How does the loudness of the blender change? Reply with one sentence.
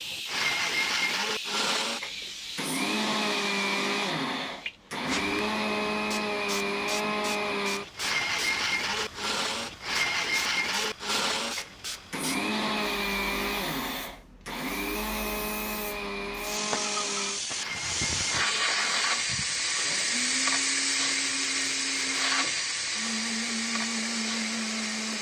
The volume of the blender goes down.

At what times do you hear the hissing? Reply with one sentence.
The hissing can be heard from 0.0 to 25.1 s.